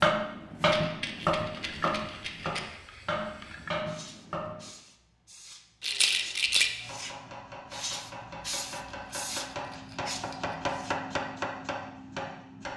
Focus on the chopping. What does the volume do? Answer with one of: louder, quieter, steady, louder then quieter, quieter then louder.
quieter then louder.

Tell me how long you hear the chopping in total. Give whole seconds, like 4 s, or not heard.
11 s.